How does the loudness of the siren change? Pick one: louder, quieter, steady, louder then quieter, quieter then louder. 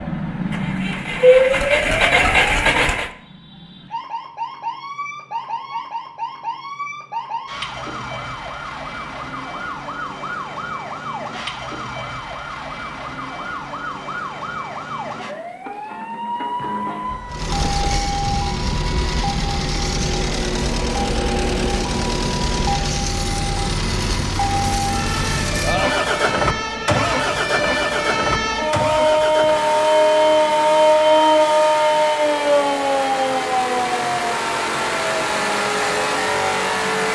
quieter then louder.